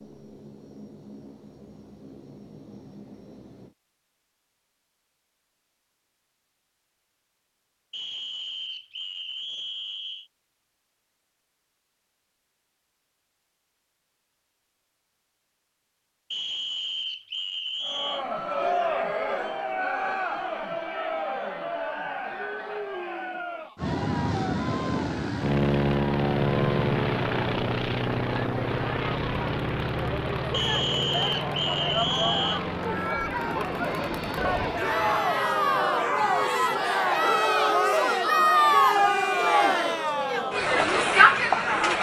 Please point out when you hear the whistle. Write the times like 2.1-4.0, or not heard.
7.9-10.3, 16.3-18.2, 30.5-32.6.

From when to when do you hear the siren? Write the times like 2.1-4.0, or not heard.
not heard.